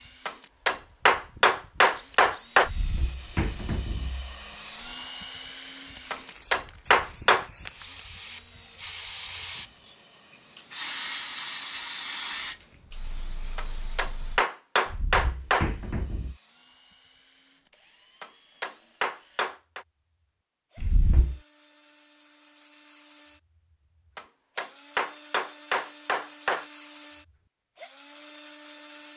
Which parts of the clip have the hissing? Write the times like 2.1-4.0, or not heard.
6.0-14.4.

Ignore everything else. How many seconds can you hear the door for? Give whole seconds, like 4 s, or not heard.
4 s.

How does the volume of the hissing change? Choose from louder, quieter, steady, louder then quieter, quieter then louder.
louder then quieter.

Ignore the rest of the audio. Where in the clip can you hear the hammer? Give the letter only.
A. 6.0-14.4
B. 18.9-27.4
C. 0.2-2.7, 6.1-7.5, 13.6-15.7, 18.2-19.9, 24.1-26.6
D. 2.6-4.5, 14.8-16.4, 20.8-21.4
C.